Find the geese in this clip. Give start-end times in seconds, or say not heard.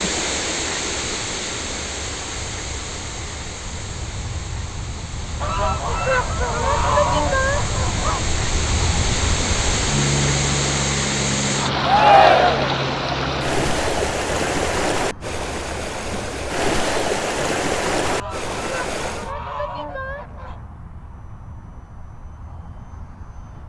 5.4-8.2, 18.0-20.6.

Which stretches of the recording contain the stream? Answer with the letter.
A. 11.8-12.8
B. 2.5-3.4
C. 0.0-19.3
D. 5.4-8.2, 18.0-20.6
C.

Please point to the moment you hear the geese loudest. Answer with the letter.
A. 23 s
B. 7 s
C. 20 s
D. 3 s
B.